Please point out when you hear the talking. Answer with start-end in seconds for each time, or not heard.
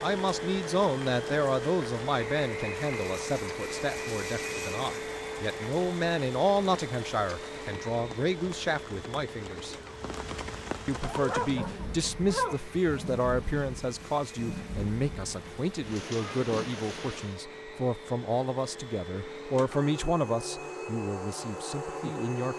0.0-9.8, 10.8-22.5.